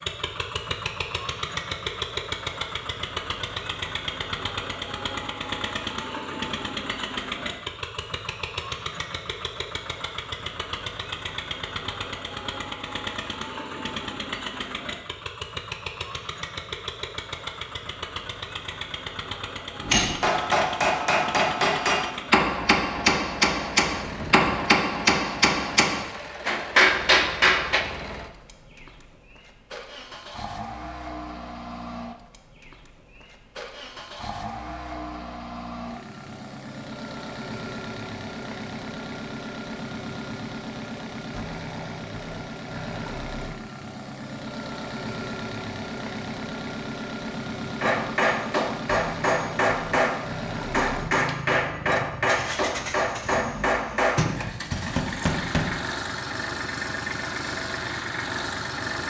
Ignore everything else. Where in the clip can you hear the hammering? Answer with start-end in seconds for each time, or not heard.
19.8-27.9, 47.8-55.8.